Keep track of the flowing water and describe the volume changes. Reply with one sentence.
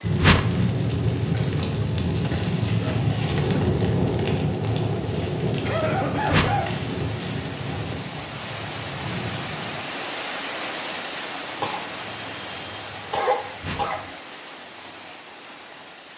The volume of the flowing water goes up, then down.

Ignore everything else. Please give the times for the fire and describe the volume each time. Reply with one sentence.
You can hear the fire from 0.0 to 9.9 s, getting quieter.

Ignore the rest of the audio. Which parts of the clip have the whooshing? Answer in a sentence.
The whooshing can be heard from 0.2 to 0.7 s, from 6.2 to 6.7 s and from 13.6 to 14.0 s.